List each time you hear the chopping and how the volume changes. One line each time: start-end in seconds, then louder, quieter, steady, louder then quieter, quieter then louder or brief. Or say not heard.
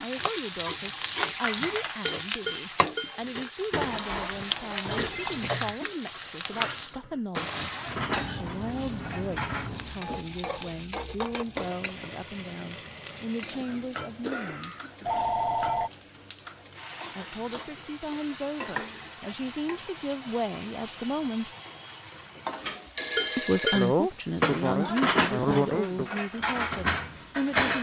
not heard.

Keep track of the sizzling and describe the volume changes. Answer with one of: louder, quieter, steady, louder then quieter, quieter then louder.
quieter.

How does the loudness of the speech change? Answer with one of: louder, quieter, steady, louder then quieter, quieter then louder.
louder.